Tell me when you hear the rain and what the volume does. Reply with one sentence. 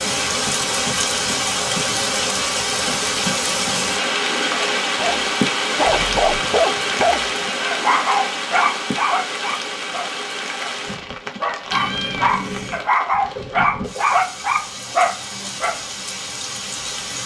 You can hear the rain from 0.0 to 17.2 s, getting quieter.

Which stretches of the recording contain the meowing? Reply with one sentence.
You can hear the meowing from 11.7 to 12.9 s.